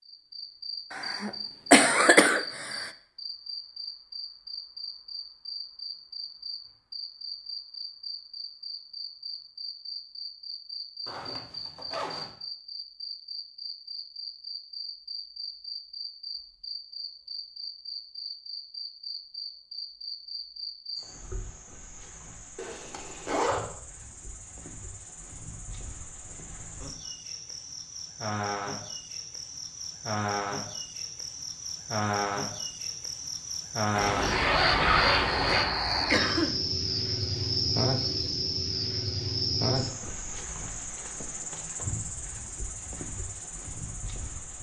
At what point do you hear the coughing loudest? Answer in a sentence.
The volume of the coughing peaks at 2 seconds.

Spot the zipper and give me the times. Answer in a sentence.
You can hear the zipper from 11.1 to 12.3 s, from 22.6 to 23.6 s and from 34.0 to 35.7 s.